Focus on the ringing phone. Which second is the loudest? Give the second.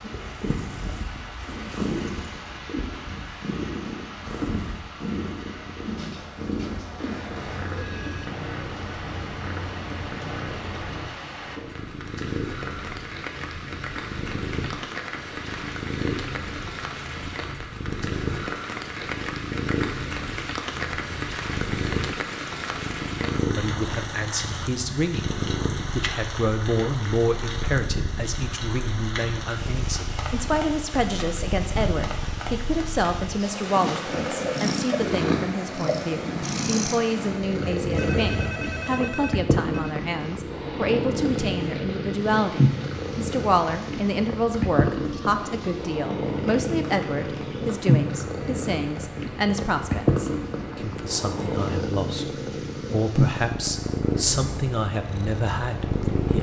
38 s.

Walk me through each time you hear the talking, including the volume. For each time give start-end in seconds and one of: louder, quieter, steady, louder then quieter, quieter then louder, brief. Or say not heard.
23.4-56.3 steady.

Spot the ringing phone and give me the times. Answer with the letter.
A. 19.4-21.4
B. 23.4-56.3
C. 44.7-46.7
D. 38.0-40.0
D.